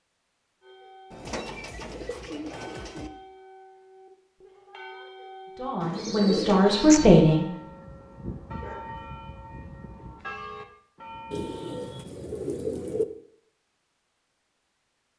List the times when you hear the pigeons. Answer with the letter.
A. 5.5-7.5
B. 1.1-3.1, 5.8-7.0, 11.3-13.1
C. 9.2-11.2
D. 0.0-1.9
B.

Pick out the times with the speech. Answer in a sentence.
You can hear the speech from 5.5 to 7.5 s.